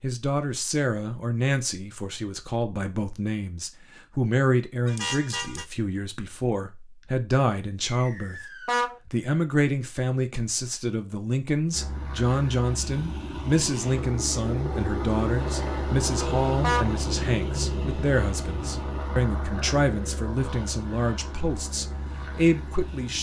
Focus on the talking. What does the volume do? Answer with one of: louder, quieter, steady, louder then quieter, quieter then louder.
steady.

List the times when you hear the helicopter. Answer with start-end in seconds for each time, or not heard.
11.7-23.1.